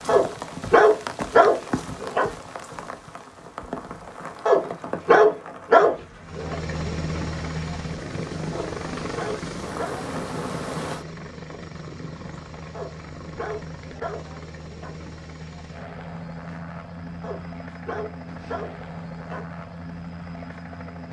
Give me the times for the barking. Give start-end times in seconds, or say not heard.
0.1-2.3, 4.5-6.5, 8.5-10.1, 12.7-14.9, 17.2-19.4.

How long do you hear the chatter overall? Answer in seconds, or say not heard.
not heard.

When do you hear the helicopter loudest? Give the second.
7 s.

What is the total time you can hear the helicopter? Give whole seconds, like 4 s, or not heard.
15 s.